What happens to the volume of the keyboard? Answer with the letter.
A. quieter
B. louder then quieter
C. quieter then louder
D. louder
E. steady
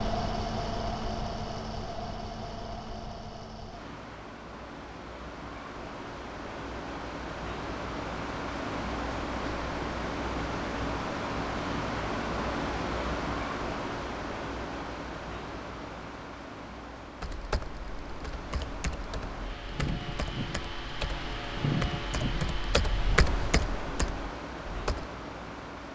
B.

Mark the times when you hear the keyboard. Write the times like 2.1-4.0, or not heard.
17.2-25.1.